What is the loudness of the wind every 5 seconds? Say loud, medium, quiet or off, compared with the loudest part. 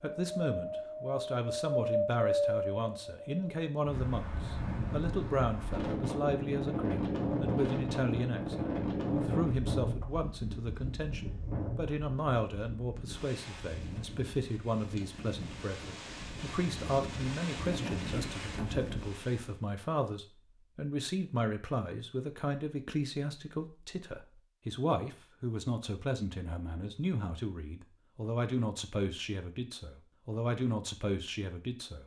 loud, loud, medium, medium, off, off, off.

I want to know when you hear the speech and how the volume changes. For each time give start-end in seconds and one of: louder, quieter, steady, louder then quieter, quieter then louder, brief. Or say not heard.
0.0-32.0 steady.